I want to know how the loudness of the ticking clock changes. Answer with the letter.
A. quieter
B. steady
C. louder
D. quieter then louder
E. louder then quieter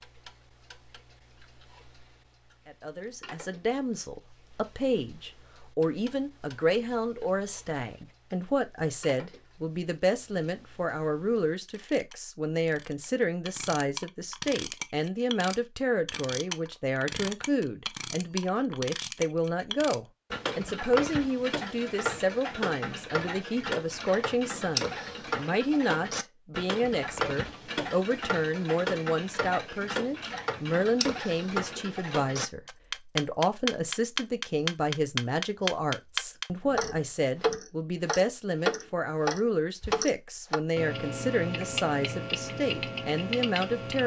C.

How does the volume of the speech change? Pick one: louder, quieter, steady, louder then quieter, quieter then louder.
steady.